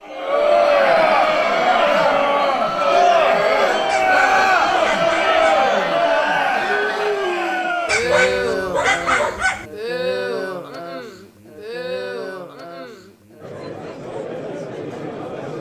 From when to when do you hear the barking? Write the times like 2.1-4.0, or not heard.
3.9-5.7, 7.8-9.7.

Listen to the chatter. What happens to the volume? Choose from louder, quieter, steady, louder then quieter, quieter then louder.
quieter.